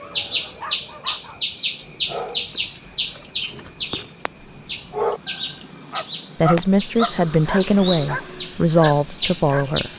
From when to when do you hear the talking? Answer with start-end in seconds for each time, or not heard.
6.4-9.9.